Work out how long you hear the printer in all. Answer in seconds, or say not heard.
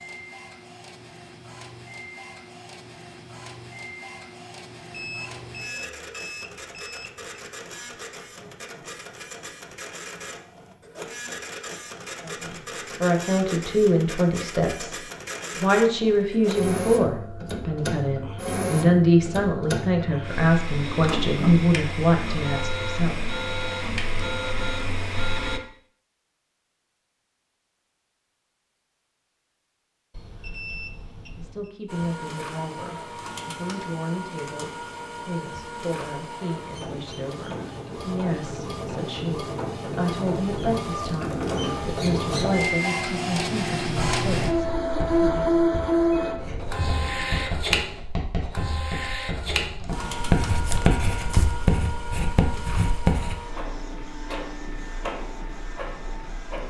50 s.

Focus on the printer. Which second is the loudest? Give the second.
46 s.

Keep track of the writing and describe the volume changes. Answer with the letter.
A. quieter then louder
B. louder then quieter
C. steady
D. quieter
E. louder
E.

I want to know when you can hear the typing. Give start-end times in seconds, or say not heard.
not heard.